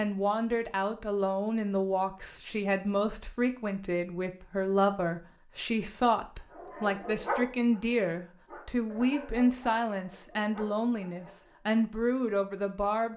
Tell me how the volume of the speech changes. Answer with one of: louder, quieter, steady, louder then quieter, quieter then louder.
steady.